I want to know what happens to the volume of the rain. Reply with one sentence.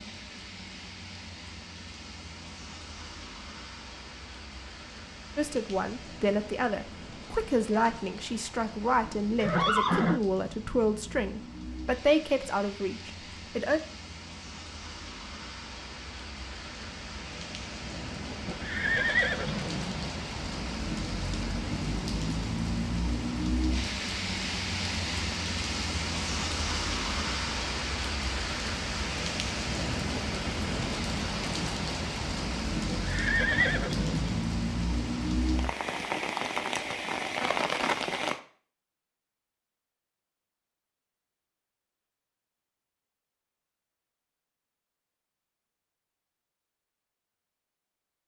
The loudness of the rain goes up.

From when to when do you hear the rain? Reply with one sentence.
You can hear the rain from 0.0 to 38.4 s.